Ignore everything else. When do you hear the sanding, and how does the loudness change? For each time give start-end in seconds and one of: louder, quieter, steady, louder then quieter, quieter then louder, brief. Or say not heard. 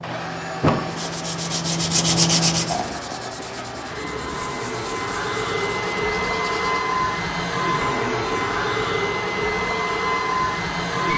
0.0-6.8 louder then quieter.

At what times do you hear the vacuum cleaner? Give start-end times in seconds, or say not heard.
0.0-11.1.